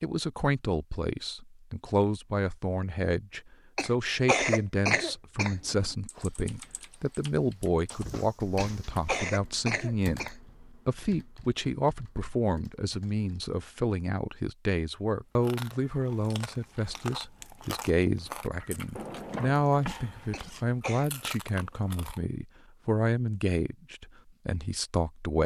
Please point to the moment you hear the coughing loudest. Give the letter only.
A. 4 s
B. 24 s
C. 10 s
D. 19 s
A.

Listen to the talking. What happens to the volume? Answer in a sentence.
The volume of the talking stays about the same.